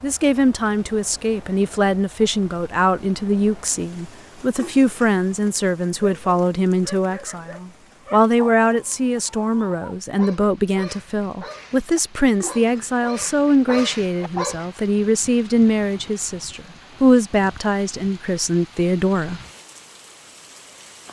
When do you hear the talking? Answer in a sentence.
The talking can be heard from 0.0 to 19.4 s.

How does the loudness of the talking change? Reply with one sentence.
The volume of the talking stays about the same.